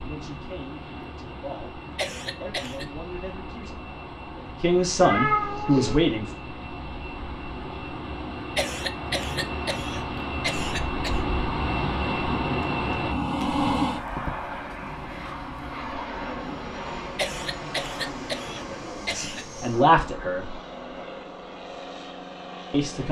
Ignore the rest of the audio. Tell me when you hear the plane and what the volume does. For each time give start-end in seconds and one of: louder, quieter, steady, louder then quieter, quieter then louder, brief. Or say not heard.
0.0-23.0 louder then quieter.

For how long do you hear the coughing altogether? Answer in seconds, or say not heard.
6 s.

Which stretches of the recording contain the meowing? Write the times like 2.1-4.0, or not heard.
5.0-6.0.